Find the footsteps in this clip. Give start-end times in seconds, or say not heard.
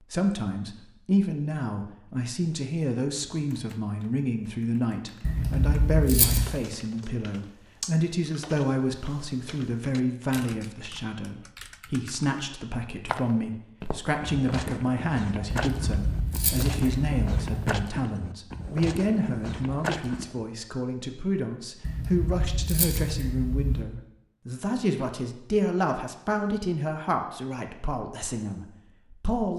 13.1-20.4.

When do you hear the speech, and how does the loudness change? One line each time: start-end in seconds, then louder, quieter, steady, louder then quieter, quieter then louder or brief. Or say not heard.
0.1-29.5 steady.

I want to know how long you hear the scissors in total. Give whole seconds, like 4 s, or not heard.
6 s.